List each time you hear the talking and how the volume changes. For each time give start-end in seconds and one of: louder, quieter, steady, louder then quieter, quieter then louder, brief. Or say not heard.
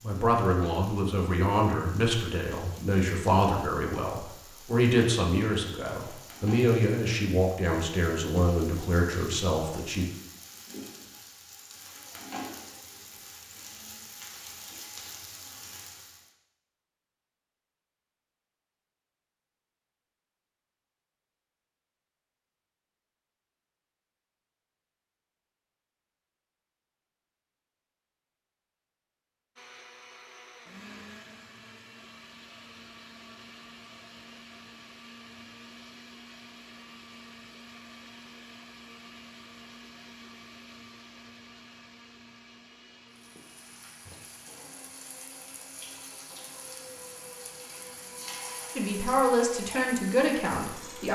0.0-10.1 steady
48.8-51.1 brief.